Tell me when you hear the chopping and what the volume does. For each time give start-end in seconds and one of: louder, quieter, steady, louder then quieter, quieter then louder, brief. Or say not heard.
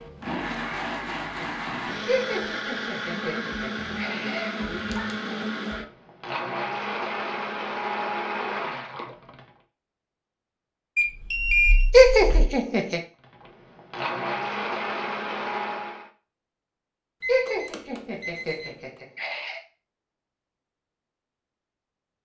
not heard.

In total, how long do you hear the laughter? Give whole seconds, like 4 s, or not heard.
6 s.